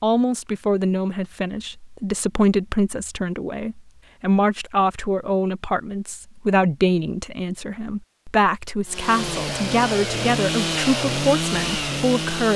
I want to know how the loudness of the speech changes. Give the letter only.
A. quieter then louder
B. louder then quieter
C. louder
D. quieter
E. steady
E.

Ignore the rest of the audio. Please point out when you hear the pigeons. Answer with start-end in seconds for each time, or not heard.
not heard.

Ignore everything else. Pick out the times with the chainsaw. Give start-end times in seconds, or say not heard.
8.8-12.5.